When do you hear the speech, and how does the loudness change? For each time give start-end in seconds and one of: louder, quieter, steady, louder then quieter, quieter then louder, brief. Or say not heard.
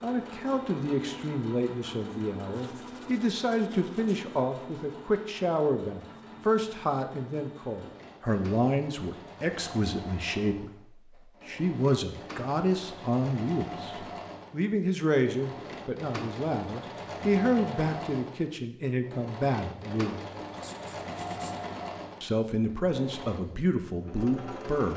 0.0-20.2 steady
22.2-24.9 brief.